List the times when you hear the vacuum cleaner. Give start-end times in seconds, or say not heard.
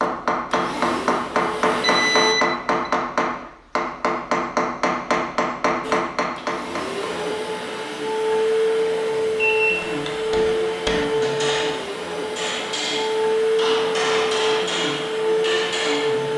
0.0-2.4, 5.8-16.3.